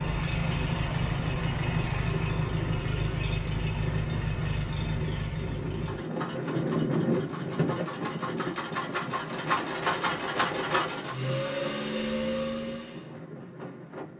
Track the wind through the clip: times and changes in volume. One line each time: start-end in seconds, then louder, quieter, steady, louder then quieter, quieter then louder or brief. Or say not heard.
0.1-14.1 louder then quieter.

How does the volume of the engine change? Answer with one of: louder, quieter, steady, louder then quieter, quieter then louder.
quieter then louder.